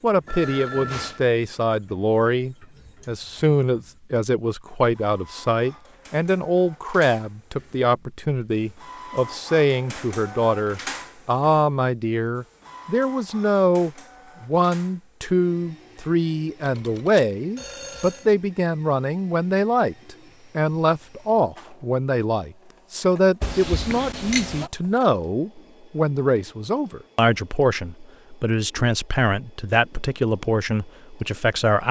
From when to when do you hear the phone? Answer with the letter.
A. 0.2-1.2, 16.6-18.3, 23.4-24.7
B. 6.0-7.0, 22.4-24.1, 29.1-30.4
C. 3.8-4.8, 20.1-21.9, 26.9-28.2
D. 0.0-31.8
A.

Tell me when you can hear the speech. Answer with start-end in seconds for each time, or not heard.
0.0-31.8.